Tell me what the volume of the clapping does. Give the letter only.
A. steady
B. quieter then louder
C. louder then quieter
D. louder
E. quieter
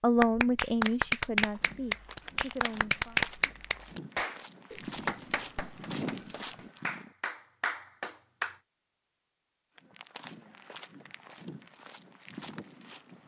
B.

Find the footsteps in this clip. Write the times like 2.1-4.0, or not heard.
1.4-7.2, 9.8-13.2.